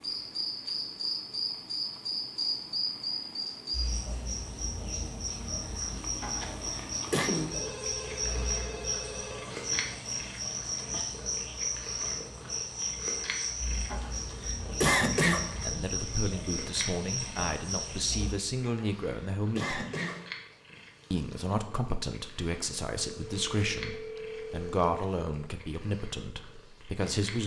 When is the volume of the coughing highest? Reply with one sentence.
The loudest moment of the coughing is at 15 seconds.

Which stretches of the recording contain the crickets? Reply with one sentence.
You can hear the crickets from 0.0 to 18.4 s.